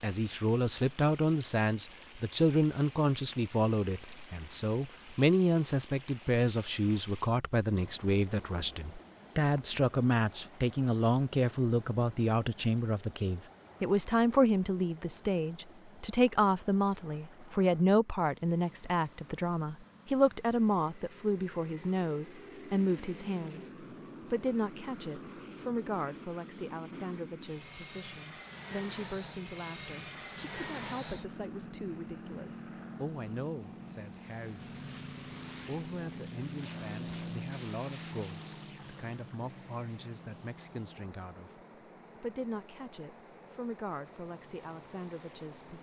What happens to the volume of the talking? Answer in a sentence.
The volume of the talking goes down.